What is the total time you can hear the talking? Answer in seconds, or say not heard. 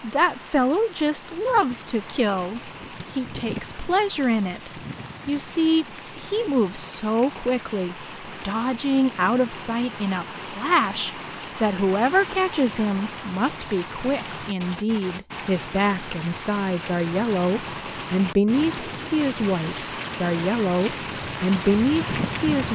23 s.